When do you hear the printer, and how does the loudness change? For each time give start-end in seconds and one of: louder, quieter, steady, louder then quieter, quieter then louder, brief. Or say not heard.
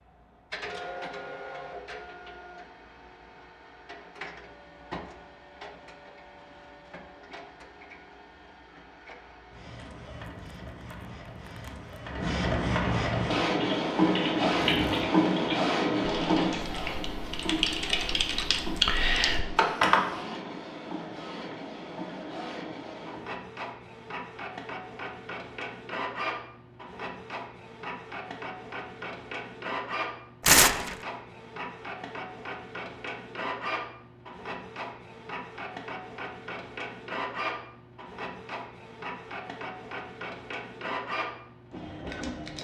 0.0-42.5 louder then quieter.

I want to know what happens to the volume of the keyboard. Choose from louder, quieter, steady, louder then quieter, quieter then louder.
quieter then louder.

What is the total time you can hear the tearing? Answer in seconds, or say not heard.
3 s.